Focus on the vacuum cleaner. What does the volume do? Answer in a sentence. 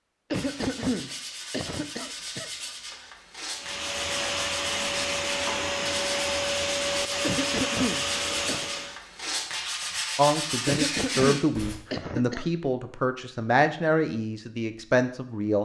The volume of the vacuum cleaner stays about the same.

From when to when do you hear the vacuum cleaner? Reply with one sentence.
You can hear the vacuum cleaner from 3.5 to 9.0 s.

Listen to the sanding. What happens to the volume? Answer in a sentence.
The volume of the sanding goes up.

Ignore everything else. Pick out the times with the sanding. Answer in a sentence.
You can hear the sanding from 0.3 to 11.8 s.